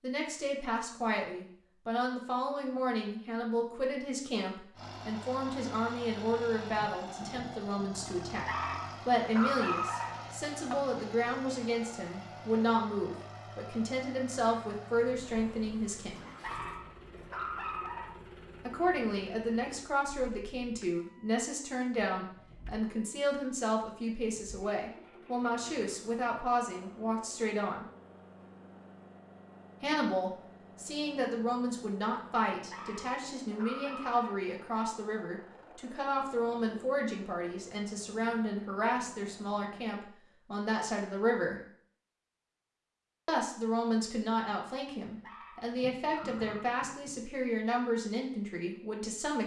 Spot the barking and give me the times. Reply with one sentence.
You can hear the barking from 8.4 to 10.8 s, from 16.4 to 18.2 s, from 32.7 to 34.4 s and from 45.2 to 46.8 s.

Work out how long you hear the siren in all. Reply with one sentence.
The siren can't be heard in this clip.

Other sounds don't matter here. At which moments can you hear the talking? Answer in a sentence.
The talking can be heard from 0.0 to 16.2 s, from 18.6 to 27.9 s, from 29.8 to 41.6 s and from 43.2 to 49.4 s.